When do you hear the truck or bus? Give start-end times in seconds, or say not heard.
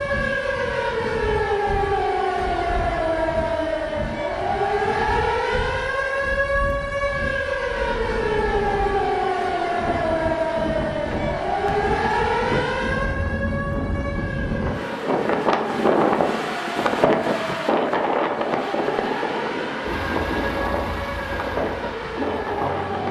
19.9-23.0.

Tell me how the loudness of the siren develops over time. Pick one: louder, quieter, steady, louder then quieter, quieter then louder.
quieter.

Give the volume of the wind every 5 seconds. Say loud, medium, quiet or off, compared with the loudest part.
quiet, quiet, medium, loud, medium.